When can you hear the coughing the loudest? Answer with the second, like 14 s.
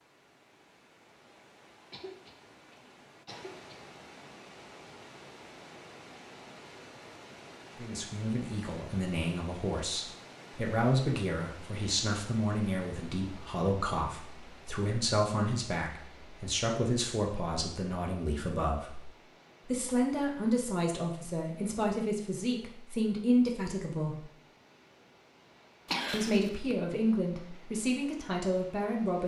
26 s.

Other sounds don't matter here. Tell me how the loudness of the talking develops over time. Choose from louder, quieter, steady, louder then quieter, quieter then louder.
steady.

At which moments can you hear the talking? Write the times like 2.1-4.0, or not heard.
7.8-24.3, 26.1-29.2.